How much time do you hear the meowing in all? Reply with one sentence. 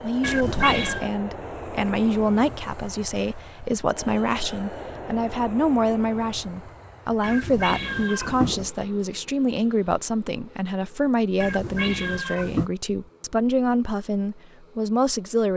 You can hear the meowing for 4 seconds altogether.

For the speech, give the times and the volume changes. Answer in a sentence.
The speech can be heard from 0.0 to 15.5 s, at a steady volume.